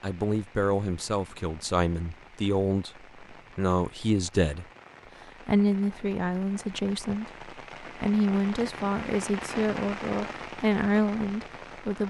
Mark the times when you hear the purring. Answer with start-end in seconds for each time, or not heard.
not heard.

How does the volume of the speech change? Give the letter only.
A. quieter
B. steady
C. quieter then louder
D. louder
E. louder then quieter
B.